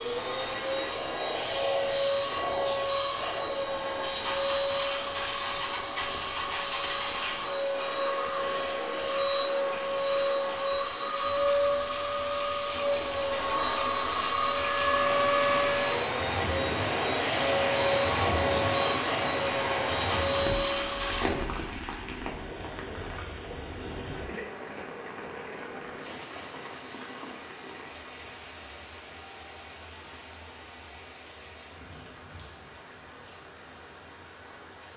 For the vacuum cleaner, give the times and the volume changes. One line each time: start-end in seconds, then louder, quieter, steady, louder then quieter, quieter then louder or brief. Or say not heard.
0.0-21.3 steady.